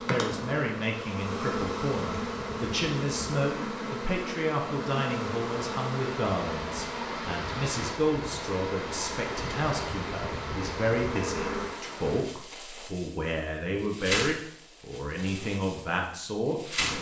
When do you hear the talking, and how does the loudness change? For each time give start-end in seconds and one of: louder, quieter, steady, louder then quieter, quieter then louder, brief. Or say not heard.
0.1-16.9 steady.